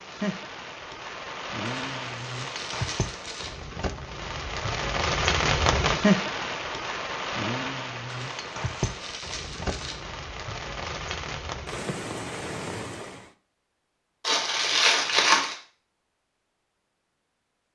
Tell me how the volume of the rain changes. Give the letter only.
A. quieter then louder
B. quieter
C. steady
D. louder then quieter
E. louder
D.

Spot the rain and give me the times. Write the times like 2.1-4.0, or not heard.
0.0-13.3.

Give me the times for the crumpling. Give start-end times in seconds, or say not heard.
1.6-3.6, 8.1-9.9, 14.2-15.6.